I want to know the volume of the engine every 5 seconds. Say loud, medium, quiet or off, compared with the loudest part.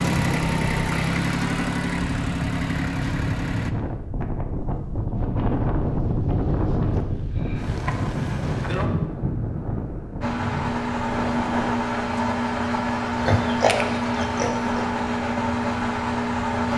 loud, off, loud, loud.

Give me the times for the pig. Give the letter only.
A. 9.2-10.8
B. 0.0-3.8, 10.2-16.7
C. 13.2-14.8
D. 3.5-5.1
C.